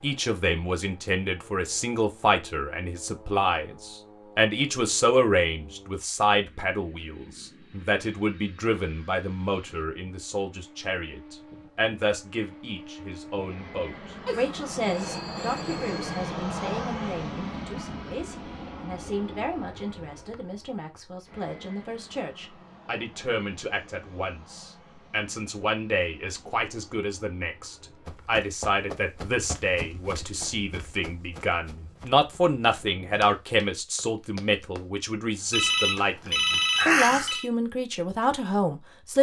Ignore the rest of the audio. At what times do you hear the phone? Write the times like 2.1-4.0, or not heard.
14.2-16.1, 35.5-37.5.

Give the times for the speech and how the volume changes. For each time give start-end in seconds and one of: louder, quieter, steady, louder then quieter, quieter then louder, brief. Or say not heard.
0.0-39.1 quieter then louder.